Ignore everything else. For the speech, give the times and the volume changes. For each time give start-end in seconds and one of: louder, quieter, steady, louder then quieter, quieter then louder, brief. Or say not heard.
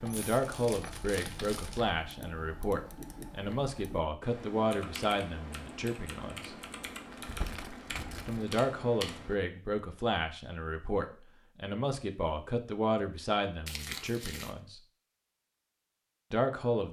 0.0-6.5 steady
8.2-14.8 steady
16.3-16.8 brief.